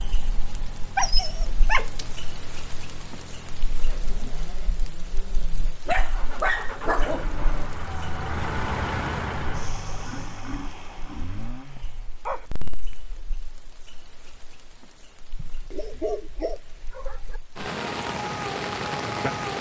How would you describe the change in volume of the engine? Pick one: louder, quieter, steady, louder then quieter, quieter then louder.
louder then quieter.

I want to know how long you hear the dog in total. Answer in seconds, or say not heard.
6 s.